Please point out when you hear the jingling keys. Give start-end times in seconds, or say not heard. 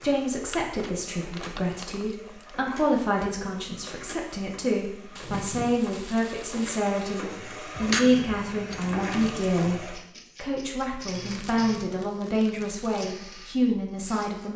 7.8-9.8.